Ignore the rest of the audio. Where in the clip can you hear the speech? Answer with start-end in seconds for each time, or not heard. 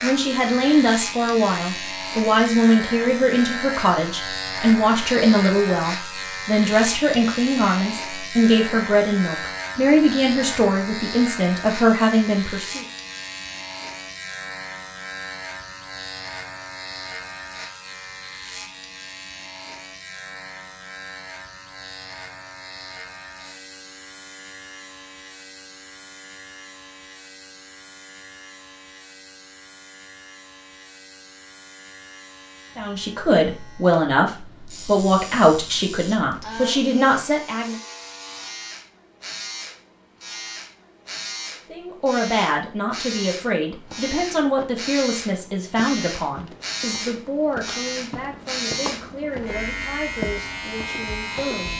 0.0-12.8, 32.8-37.8, 41.7-51.7.